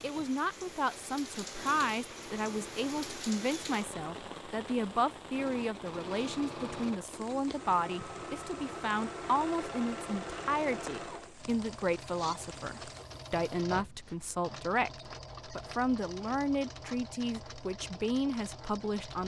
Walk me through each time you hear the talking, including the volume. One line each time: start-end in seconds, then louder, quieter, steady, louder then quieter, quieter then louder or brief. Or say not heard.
0.0-19.2 steady.